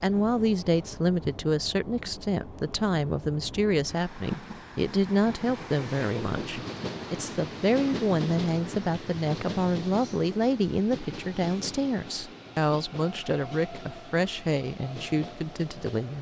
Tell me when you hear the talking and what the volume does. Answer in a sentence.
You can hear the talking from 0.0 to 16.1 s, at a steady volume.